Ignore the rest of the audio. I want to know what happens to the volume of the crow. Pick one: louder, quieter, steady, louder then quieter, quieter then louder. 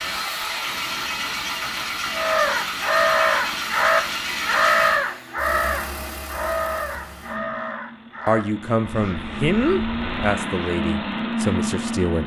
quieter.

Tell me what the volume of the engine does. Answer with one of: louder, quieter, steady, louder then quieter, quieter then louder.
quieter then louder.